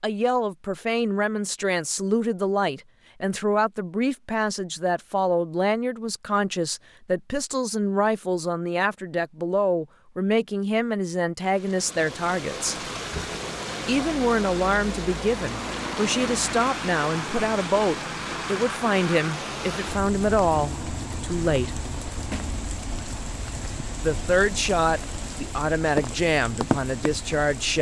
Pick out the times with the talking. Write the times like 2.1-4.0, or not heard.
0.0-12.8, 13.8-21.8, 24.0-27.7.